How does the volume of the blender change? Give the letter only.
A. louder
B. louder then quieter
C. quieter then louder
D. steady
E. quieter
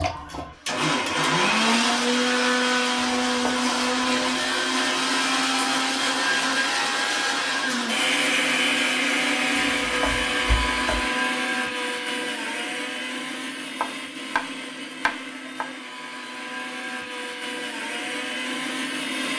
E.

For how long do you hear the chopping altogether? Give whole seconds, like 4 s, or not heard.
5 s.